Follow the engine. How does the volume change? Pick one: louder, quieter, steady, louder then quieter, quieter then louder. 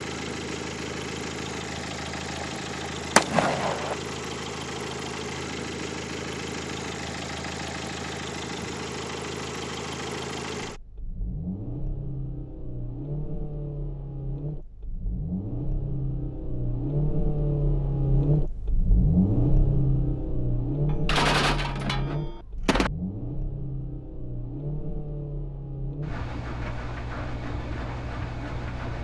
louder then quieter.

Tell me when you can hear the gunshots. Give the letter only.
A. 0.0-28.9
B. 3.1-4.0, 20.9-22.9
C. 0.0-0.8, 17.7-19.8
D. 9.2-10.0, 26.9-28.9
B.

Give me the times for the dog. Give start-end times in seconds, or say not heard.
not heard.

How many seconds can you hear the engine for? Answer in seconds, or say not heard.
29 s.